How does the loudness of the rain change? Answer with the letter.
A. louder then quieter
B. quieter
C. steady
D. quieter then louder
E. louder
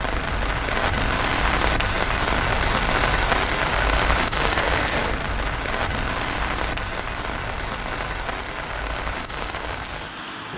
B.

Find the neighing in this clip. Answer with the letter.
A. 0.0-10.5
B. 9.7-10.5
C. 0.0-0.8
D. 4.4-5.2
D.